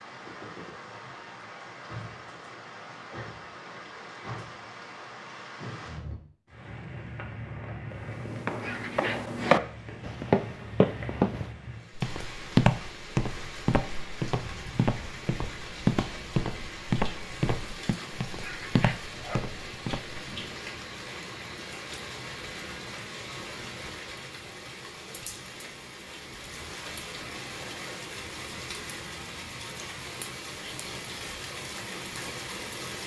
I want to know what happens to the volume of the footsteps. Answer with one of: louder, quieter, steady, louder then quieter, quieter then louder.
quieter.